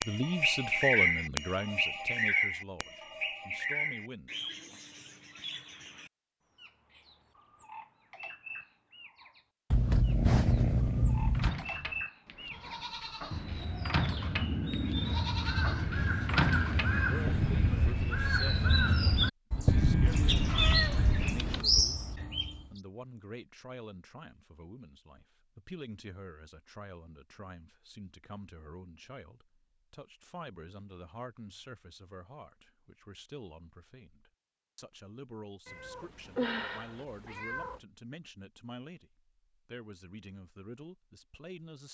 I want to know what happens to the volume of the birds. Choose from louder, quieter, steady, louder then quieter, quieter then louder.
quieter then louder.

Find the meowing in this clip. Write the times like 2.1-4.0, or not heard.
9.7-11.6, 20.1-21.6, 35.6-37.8.